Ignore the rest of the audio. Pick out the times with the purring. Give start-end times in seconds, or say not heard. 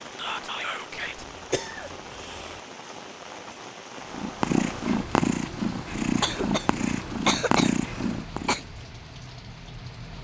4.1-8.6.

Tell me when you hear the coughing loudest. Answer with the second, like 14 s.
7 s.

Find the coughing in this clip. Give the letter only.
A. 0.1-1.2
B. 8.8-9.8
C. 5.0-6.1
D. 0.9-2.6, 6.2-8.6
D.